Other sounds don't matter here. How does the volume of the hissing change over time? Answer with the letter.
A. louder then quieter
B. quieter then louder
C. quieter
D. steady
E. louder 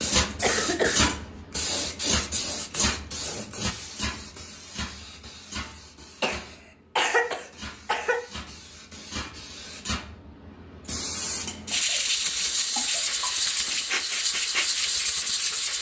B.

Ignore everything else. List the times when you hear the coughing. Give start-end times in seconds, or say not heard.
0.4-1.1, 6.2-8.2, 11.4-13.8.